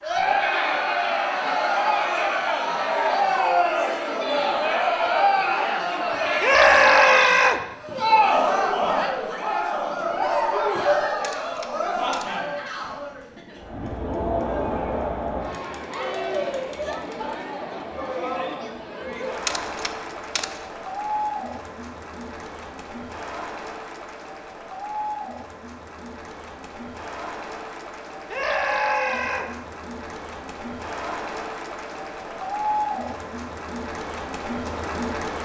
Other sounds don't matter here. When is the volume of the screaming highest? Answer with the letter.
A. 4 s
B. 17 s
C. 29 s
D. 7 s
D.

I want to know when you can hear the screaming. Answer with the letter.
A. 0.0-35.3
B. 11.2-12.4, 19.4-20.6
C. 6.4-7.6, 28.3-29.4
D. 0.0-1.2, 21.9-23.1
C.